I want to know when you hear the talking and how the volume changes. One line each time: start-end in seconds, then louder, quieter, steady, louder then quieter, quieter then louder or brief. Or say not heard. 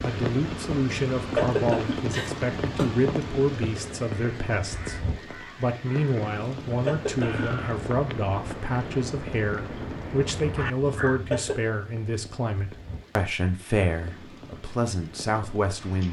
0.0-16.0 steady.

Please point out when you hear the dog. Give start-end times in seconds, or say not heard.
not heard.